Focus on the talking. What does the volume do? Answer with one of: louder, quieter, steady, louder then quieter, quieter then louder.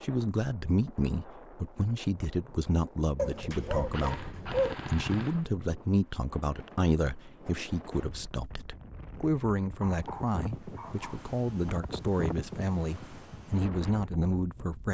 steady.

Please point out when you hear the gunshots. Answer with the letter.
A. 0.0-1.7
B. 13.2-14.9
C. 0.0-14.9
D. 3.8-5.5
D.